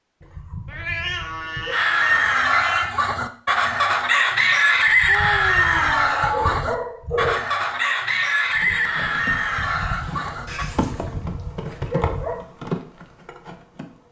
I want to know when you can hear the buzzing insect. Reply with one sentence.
You can hear the buzzing insect from 8.6 to 14.0 s.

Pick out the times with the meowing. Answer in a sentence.
The meowing can be heard from 0.7 to 3.0 s, from 5.0 to 6.6 s and from 10.4 to 11.1 s.